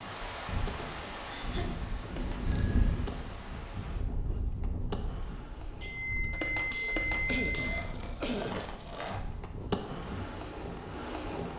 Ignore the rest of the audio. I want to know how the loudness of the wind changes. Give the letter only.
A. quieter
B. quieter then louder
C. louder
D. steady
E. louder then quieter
A.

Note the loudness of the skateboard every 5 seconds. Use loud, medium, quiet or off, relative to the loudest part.
medium, loud, loud.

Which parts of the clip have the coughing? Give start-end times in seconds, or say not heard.
0.7-1.8, 6.7-8.7.